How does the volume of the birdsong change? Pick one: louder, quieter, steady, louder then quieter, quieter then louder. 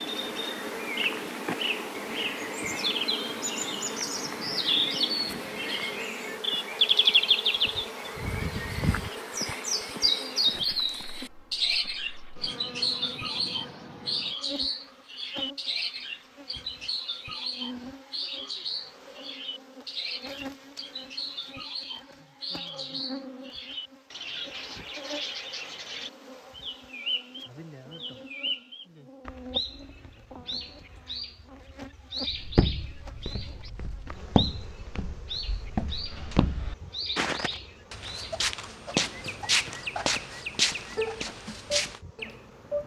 quieter.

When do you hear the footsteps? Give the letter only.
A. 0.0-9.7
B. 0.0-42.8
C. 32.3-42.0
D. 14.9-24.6
C.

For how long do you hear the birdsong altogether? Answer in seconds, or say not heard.
43 s.